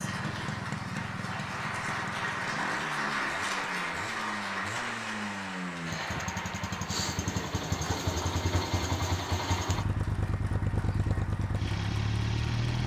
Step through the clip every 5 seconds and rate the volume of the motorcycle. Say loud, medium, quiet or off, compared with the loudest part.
medium, loud, loud.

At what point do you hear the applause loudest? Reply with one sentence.
The volume of the applause peaks at 3 seconds.